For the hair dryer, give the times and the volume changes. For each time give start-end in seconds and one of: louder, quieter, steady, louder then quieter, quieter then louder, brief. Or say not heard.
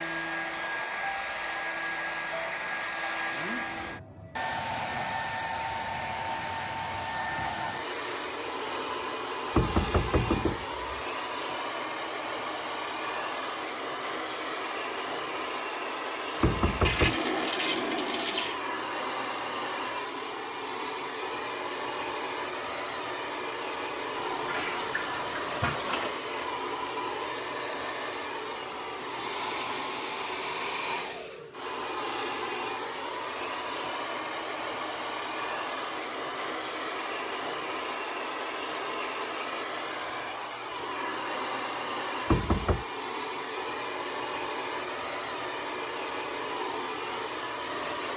0.0-48.1 steady.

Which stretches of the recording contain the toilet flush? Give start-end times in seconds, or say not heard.
16.8-18.6, 24.1-26.1.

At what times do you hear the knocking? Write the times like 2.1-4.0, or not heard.
9.6-11.0, 16.4-17.2, 42.2-42.9.